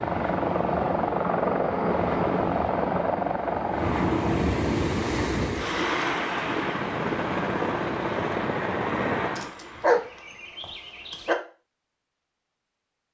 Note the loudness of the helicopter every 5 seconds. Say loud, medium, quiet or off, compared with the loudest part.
loud, loud, off.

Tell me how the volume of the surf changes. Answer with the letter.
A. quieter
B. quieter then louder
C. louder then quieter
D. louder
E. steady
C.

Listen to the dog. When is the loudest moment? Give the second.
10 s.